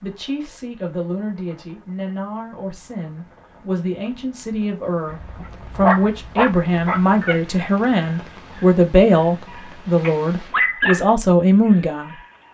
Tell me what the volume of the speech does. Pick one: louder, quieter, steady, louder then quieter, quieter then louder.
louder.